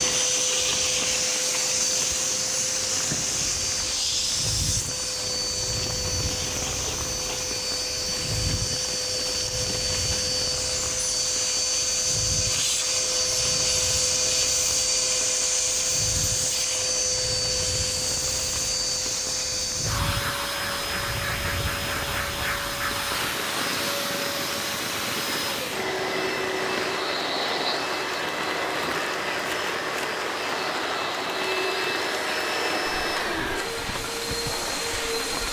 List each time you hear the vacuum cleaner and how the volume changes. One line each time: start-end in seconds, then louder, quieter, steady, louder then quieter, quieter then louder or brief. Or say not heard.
0.0-35.4 steady.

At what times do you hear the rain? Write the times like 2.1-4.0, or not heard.
0.0-35.4.